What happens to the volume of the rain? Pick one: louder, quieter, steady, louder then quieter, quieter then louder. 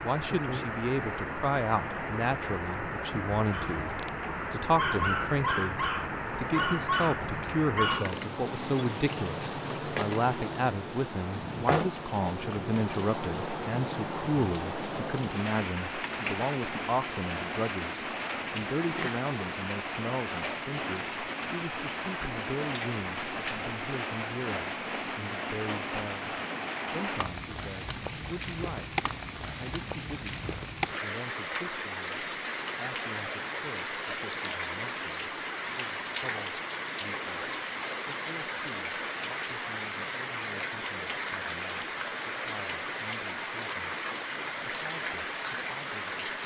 steady.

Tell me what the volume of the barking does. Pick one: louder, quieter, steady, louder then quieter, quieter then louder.
louder.